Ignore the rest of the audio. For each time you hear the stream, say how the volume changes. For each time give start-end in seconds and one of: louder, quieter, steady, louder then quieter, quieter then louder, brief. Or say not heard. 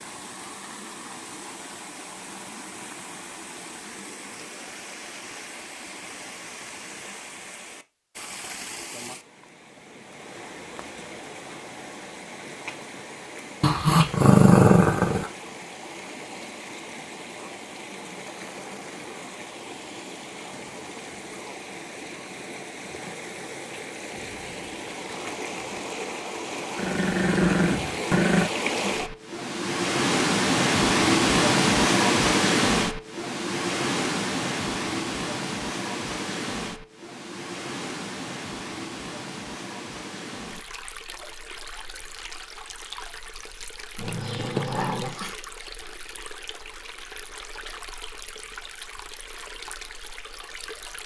0.0-51.0 louder then quieter.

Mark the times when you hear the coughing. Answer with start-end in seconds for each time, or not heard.
not heard.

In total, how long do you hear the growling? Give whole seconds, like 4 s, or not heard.
5 s.